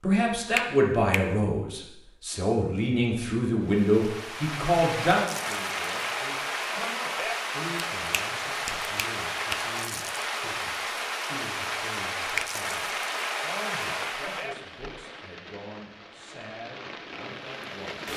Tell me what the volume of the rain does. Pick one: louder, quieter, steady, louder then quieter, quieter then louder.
quieter.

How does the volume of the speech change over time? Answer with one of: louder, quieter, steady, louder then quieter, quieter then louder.
quieter.